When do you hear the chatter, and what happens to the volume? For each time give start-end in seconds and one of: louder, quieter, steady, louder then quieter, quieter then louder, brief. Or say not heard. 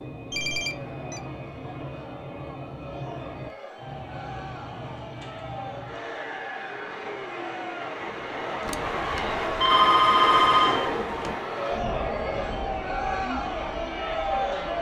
0.3-14.7 louder.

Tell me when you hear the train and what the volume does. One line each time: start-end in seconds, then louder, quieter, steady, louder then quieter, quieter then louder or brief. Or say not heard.
0.0-14.7 louder then quieter.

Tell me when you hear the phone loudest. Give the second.
10 s.